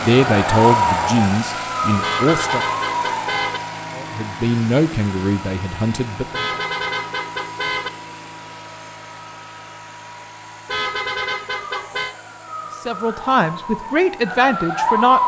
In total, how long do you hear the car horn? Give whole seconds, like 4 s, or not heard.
5 s.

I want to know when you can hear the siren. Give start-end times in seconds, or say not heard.
0.0-3.5, 11.7-15.2.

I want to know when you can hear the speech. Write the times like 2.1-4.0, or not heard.
0.0-2.6, 4.0-6.6, 12.8-15.2.